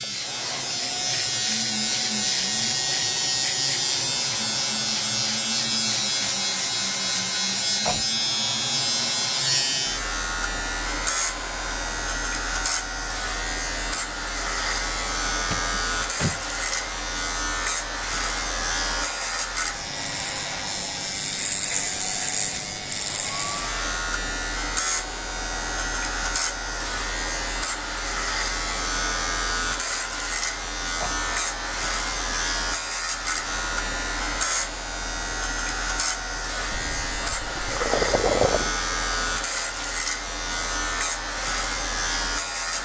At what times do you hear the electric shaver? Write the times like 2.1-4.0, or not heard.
0.0-42.8.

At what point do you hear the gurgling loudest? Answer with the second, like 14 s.
38 s.